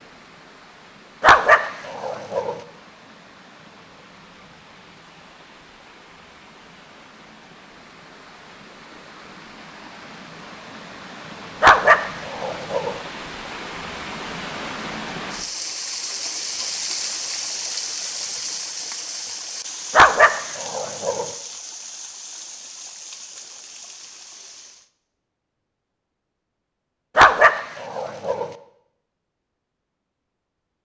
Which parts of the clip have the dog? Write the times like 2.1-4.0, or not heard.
1.2-2.5, 11.6-12.9, 19.9-21.2, 27.1-28.5.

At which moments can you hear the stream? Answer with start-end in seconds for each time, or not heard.
0.0-24.9.